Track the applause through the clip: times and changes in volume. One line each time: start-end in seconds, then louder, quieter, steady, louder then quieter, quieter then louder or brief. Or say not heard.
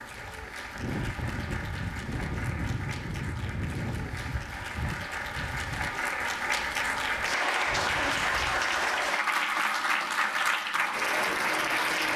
0.0-12.1 louder.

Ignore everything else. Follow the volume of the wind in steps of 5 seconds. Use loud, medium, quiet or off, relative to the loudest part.
loud, medium, off.